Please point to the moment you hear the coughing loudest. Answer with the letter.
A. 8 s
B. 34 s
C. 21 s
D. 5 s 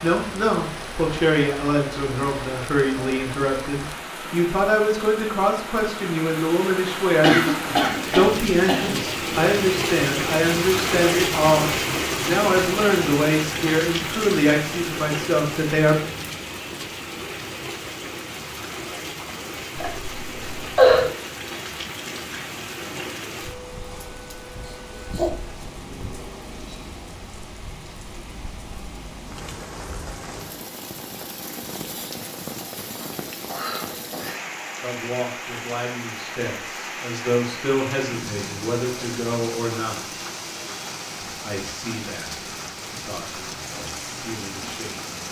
C.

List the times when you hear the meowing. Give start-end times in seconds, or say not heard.
not heard.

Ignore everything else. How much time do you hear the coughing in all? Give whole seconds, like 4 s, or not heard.
5 s.